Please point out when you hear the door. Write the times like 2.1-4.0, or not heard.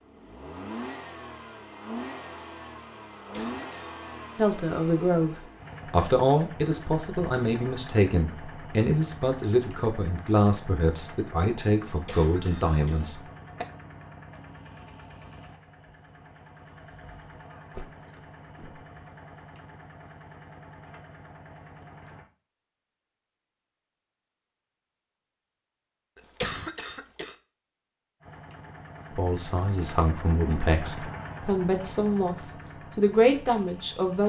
17.7-18.9.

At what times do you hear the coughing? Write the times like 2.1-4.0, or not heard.
3.3-4.0, 11.8-13.1, 26.1-27.4.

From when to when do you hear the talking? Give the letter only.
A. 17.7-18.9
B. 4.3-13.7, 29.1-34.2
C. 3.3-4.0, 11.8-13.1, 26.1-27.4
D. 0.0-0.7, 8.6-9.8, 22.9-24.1
B.